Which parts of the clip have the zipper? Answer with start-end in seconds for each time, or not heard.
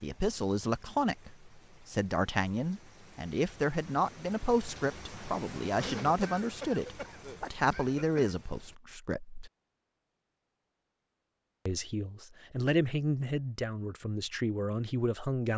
not heard.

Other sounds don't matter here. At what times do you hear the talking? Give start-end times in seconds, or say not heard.
0.0-9.5, 11.7-15.5.